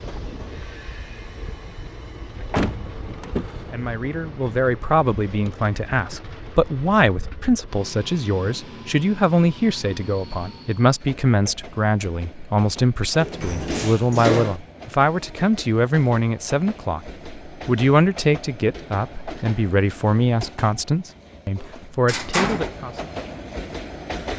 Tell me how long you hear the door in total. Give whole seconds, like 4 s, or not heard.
4 s.